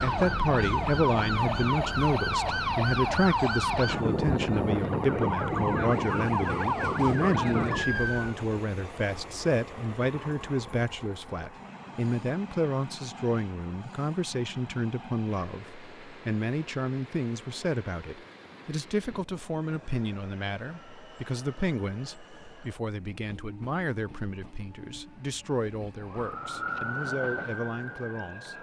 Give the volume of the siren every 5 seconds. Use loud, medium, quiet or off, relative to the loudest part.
loud, loud, off, off, off, medium.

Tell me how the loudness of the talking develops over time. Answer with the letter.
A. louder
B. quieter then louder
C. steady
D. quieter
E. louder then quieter
D.